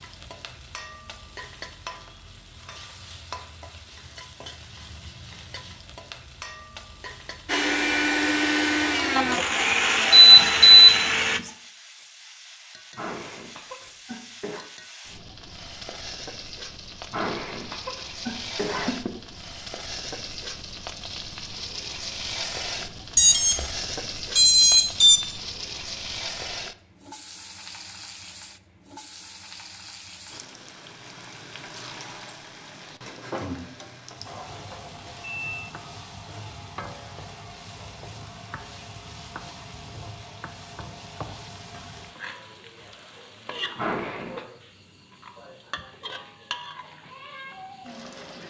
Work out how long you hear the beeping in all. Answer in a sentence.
You can hear the beeping for 4 seconds altogether.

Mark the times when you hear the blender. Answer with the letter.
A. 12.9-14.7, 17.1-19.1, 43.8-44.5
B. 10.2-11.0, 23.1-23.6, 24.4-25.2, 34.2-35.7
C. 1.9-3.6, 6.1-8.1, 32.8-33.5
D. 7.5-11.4
D.